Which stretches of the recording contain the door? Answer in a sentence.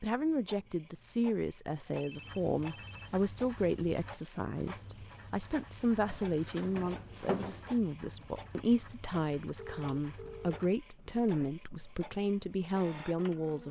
You can hear the door from 6.1 to 7.7 s.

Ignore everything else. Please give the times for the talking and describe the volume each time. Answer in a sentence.
You can hear the talking from 0.0 to 13.6 s, at a steady volume.